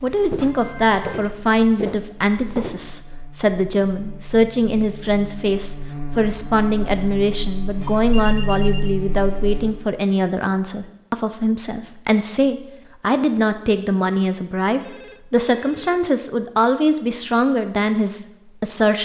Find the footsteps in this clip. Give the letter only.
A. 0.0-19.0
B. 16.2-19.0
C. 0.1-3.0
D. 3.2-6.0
C.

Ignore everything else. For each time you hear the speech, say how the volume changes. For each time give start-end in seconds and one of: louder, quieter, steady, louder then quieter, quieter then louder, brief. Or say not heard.
0.0-19.0 steady.